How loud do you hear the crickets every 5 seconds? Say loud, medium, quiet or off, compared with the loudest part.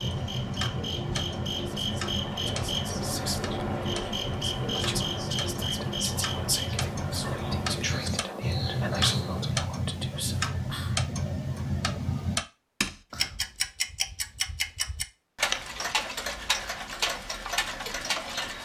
loud, loud, off, off.